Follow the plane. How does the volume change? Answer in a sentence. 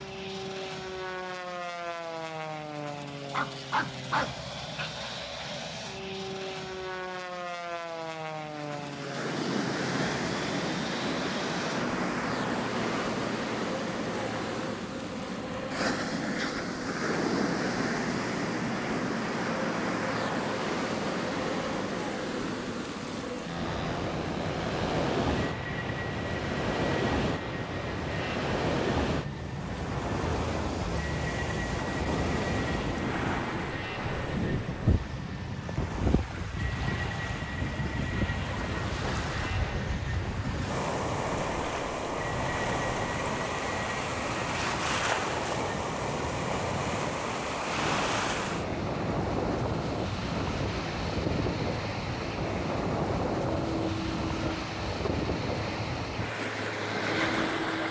The volume of the plane stays about the same.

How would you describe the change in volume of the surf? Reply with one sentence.
The loudness of the surf stays about the same.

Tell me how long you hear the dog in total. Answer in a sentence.
You can hear the dog for 2 seconds altogether.